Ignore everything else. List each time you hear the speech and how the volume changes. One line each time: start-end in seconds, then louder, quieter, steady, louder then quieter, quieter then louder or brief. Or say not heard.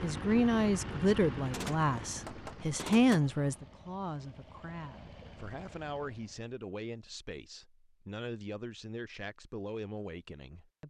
0.0-10.8 quieter.